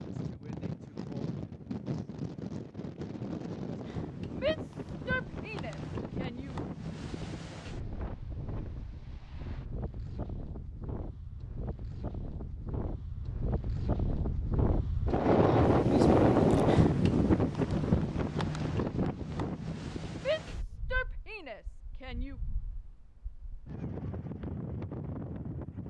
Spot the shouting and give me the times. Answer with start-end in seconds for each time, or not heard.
4.3-6.5, 20.1-22.4.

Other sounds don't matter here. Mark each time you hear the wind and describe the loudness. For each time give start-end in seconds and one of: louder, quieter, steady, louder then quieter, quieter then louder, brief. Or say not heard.
0.0-25.8 louder then quieter.